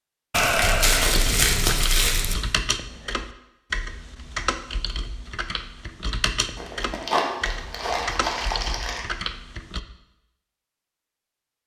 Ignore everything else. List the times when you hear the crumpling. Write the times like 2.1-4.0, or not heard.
0.3-2.4, 6.5-9.1.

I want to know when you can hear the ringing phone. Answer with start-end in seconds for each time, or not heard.
not heard.